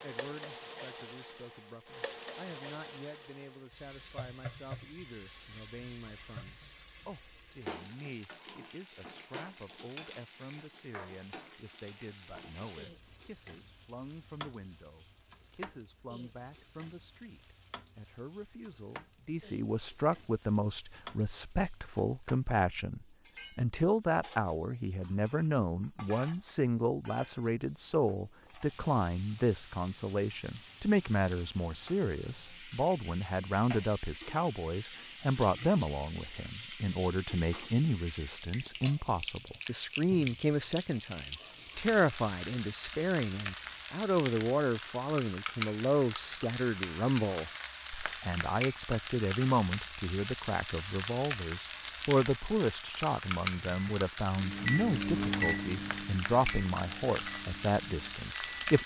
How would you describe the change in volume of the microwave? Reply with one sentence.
The loudness of the microwave goes up, then down.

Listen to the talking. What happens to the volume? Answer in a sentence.
The loudness of the talking goes up.